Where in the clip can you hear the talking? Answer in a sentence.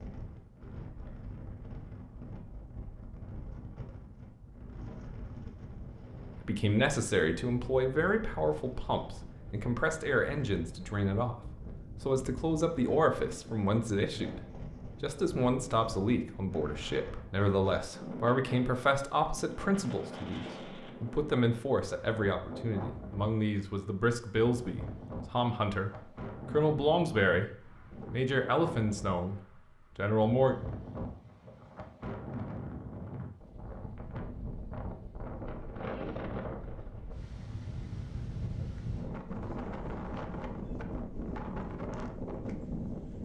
The talking can be heard from 6.4 to 11.3 s, from 12.0 to 27.5 s and from 28.1 to 30.6 s.